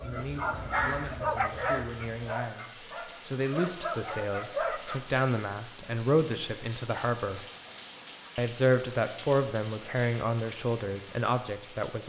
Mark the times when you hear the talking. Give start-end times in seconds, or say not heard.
0.0-7.4, 8.3-12.0.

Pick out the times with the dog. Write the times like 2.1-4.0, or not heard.
0.0-5.0.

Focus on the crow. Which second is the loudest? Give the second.
1 s.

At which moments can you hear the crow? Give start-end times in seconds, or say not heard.
0.0-2.1.